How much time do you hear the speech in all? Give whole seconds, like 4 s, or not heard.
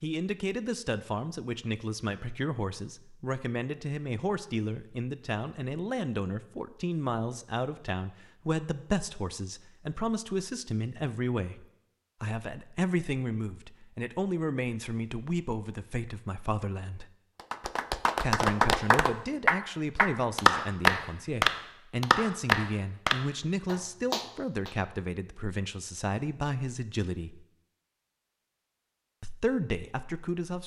28 s.